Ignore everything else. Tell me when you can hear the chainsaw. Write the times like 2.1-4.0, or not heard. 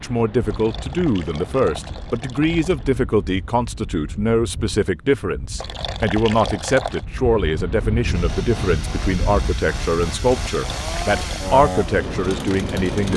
8.1-13.1.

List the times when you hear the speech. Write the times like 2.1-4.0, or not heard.
0.0-13.1.